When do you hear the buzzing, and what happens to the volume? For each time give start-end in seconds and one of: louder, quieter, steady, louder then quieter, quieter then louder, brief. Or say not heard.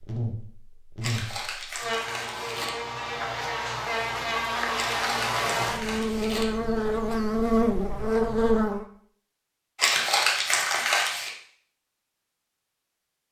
0.0-8.8 louder.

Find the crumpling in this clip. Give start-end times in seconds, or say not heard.
1.0-2.7, 4.8-6.5, 9.8-11.3.